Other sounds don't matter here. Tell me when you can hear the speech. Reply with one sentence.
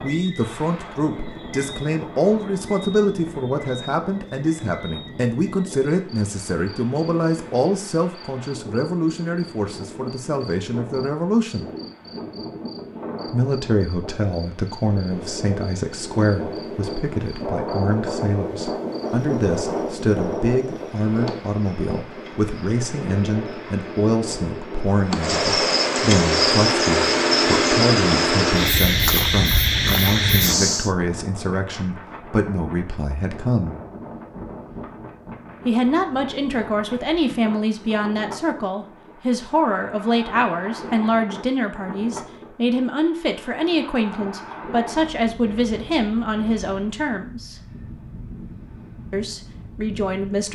The speech can be heard from 0.0 to 11.7 s, from 13.3 to 33.8 s, from 35.6 to 47.5 s and from 49.1 to 50.5 s.